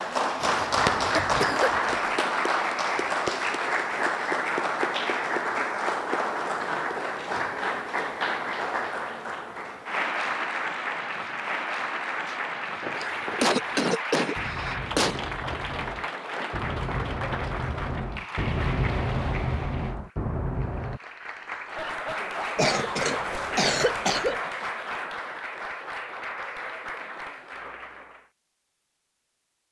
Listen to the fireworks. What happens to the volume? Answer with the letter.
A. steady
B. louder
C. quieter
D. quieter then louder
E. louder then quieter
B.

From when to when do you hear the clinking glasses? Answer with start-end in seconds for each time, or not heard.
not heard.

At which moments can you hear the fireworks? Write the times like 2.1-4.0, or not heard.
12.2-21.0.